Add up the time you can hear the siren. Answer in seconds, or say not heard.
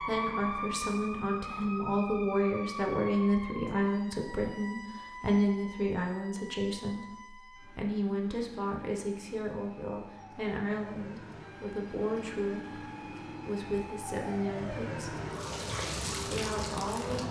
17 s.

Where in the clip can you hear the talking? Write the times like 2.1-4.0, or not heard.
0.1-15.2, 16.2-17.2.